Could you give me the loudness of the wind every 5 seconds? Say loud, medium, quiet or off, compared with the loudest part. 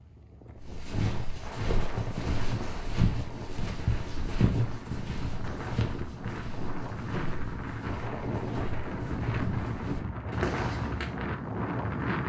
medium, loud, loud.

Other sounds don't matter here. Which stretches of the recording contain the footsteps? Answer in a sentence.
You can hear the footsteps from 0.6 to 11.2 s.